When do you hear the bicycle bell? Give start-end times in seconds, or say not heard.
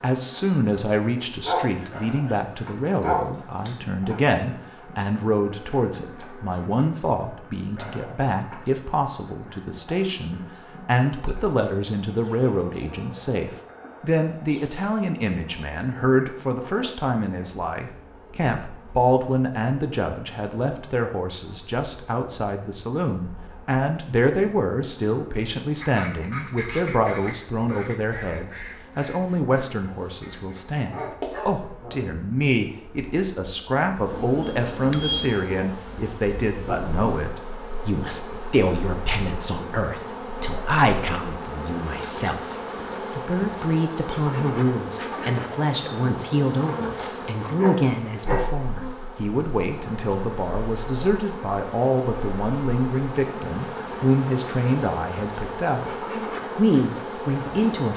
34.4-35.3.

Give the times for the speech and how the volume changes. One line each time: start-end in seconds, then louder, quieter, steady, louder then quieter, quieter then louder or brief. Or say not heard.
0.0-55.9 steady
56.5-57.9 brief.